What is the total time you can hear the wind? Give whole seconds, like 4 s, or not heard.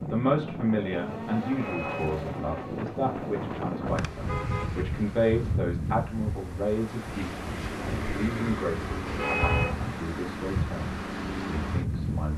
12 s.